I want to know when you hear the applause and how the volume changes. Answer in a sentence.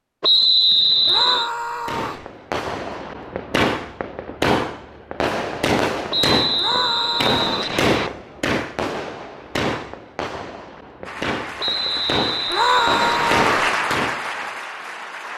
You can hear the applause from 11.0 to 15.3 s, getting louder then quieter.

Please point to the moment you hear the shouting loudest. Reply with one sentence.
The loudest moment of the shouting is at 13 seconds.